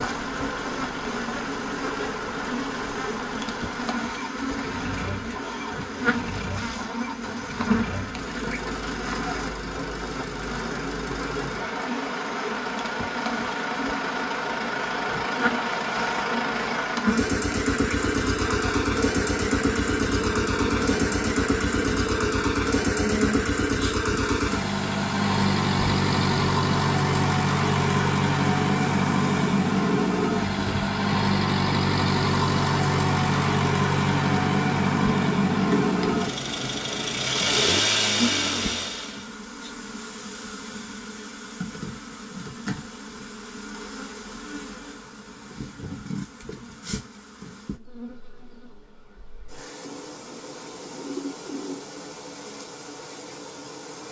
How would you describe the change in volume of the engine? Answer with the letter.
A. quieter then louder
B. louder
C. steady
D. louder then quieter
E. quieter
B.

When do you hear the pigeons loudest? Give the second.
51 s.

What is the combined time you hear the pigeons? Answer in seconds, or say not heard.
2 s.